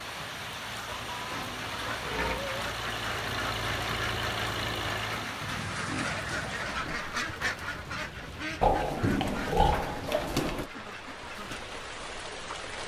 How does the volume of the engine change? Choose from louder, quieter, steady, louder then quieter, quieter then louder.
louder.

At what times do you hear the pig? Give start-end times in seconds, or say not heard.
0.8-2.6, 5.4-7.0, 8.6-10.7.